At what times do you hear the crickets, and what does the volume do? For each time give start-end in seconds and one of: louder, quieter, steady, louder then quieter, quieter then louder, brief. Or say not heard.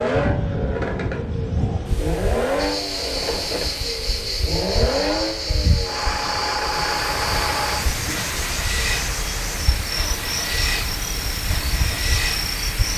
2.5-12.9 steady.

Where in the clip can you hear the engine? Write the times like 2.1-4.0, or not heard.
0.0-12.9.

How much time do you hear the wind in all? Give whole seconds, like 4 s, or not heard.
13 s.